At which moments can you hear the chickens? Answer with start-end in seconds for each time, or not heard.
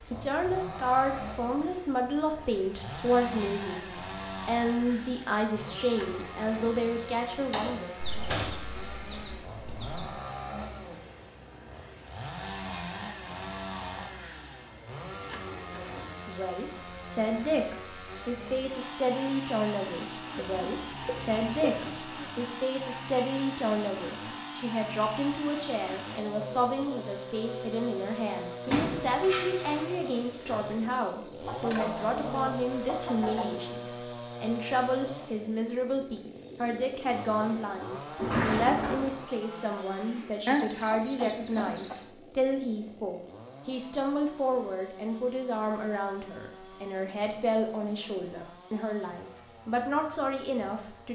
8.0-10.1, 20.4-22.0, 31.4-33.5, 40.5-42.0.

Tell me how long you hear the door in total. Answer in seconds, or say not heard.
4 s.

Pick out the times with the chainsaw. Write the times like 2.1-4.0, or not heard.
0.0-51.1.